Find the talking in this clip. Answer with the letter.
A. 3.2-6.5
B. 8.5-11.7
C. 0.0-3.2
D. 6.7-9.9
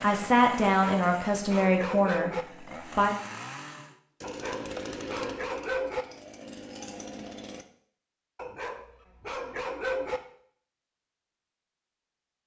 C.